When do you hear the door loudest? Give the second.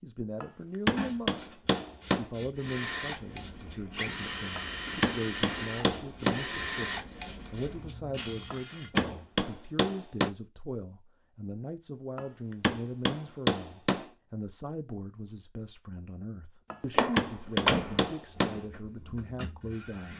18 s.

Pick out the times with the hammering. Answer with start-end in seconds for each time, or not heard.
0.4-2.3, 4.5-6.5, 8.5-10.3, 12.2-14.1, 16.7-18.6.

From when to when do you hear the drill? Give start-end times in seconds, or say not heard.
2.5-8.7, 18.2-20.1.